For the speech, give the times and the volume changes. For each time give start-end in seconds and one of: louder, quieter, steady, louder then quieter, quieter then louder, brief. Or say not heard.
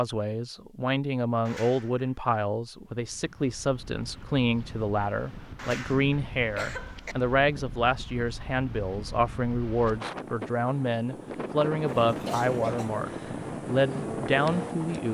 0.0-15.0 steady.